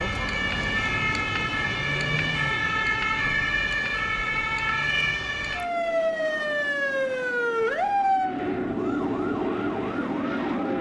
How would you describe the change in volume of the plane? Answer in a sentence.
The loudness of the plane goes up.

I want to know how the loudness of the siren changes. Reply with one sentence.
The volume of the siren goes down.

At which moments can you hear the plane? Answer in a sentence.
You can hear the plane from 5.4 to 10.7 s.